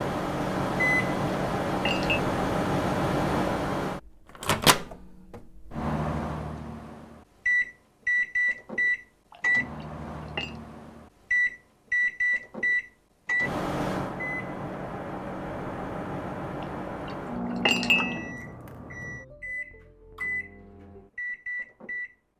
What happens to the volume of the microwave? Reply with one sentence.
The volume of the microwave goes down.